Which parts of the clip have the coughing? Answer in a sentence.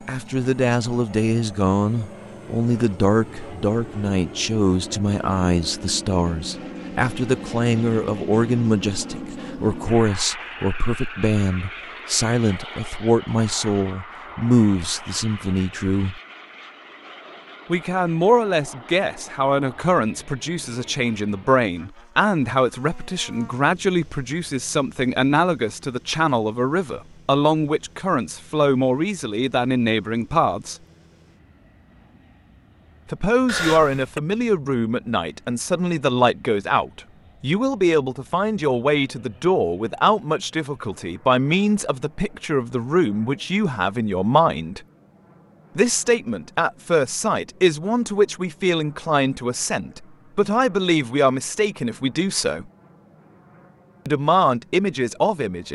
The coughing can be heard from 33.5 to 34.2 s.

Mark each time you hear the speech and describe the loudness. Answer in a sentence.
You can hear the speech from 0.1 to 16.2 s, at a steady volume; from 17.6 to 30.8 s, at a steady volume; from 33.1 to 44.8 s, at a steady volume; from 45.8 to 52.6 s, at a steady volume; and briefly from 54.0 to 55.7 s.